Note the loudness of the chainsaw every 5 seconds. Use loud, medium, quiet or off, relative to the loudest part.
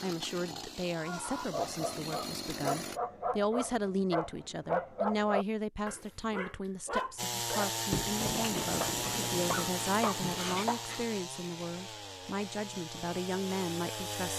medium, loud, medium.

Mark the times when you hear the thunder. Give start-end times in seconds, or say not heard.
7.9-10.4.